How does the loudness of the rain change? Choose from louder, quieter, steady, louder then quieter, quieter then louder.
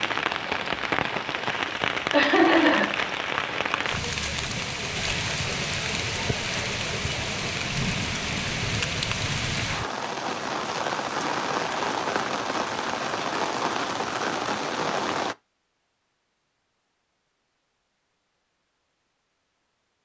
steady.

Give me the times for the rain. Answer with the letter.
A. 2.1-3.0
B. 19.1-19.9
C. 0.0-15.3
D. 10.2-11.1
C.